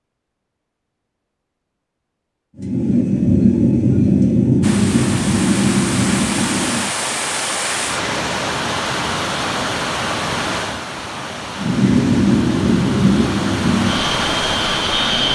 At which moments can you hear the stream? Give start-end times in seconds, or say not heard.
4.6-15.2.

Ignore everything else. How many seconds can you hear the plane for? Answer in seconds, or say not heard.
8 s.